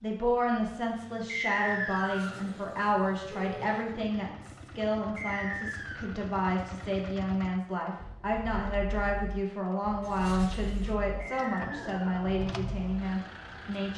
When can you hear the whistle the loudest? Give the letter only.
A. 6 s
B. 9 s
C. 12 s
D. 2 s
D.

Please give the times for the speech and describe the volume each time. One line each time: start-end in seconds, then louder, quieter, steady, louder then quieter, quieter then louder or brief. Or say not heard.
0.0-13.9 steady.